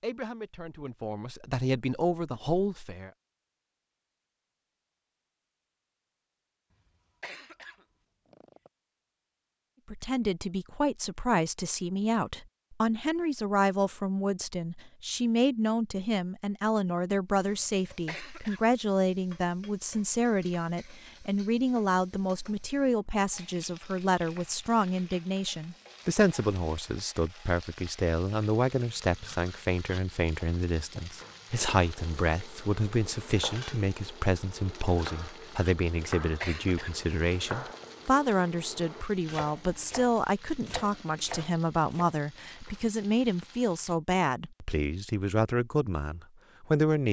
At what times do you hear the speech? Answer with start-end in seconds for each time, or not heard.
0.0-3.1, 9.9-47.0.